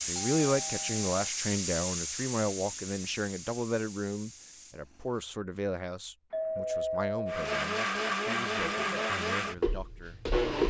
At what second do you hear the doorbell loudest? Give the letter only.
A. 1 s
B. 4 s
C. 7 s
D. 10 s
C.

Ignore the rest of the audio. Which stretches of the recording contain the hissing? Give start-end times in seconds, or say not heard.
0.0-5.2.